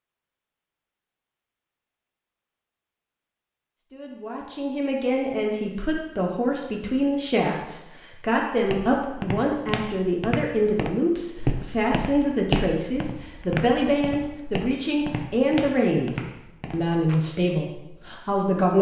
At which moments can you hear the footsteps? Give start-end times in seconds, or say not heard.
8.6-17.1.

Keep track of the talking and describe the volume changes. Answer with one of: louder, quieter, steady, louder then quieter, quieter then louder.
steady.